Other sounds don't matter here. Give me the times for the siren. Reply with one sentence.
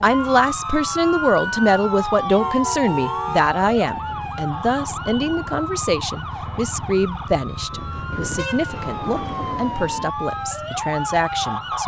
You can hear the siren from 0.0 to 11.8 s.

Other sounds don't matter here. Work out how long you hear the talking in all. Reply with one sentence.
You can hear the talking for 12 seconds altogether.